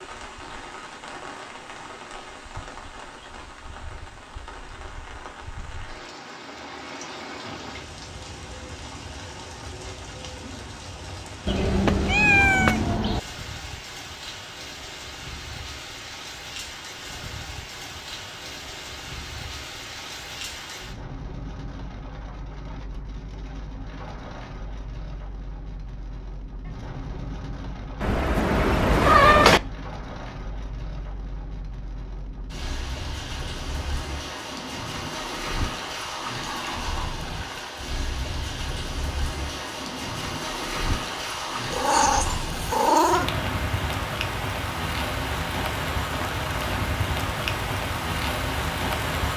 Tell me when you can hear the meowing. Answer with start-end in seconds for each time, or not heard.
11.4-13.2, 28.0-29.6, 41.7-43.3.